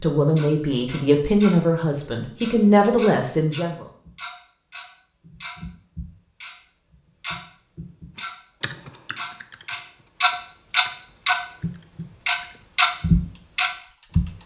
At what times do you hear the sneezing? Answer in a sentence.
You can't hear the sneezing here.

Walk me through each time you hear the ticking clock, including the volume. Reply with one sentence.
You can hear the ticking clock briefly from 0.1 to 1.6 s; and from 2.4 to 14.2 s, getting louder.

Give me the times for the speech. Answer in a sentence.
The speech can be heard from 0.0 to 3.9 s.